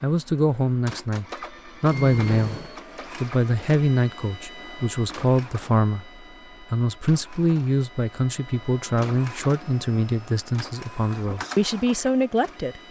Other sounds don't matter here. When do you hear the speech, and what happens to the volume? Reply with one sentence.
You can hear the speech from 0.0 to 12.8 s, at a steady volume.